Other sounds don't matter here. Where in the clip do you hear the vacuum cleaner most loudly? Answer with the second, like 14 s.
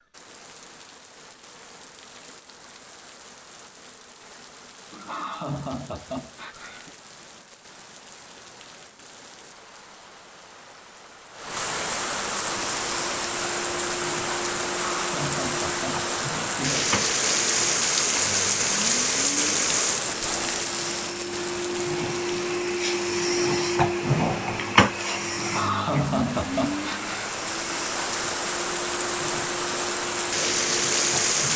24 s.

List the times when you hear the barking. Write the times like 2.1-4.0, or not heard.
not heard.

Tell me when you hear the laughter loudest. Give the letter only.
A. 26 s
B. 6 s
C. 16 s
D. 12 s
A.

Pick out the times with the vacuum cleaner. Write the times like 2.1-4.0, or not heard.
12.5-31.5.